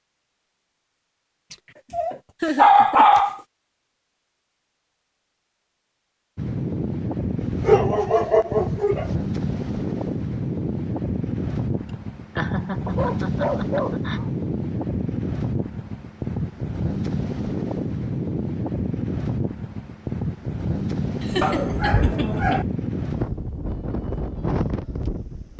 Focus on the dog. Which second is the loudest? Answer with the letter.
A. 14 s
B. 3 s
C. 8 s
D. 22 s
B.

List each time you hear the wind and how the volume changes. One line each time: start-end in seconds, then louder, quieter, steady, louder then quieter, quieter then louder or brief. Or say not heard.
6.3-25.5 steady.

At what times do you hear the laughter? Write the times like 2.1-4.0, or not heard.
2.4-3.1, 11.8-14.2, 21.2-22.6.